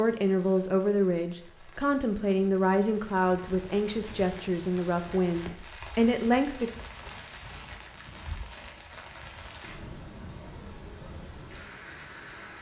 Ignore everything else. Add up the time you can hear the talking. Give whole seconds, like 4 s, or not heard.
7 s.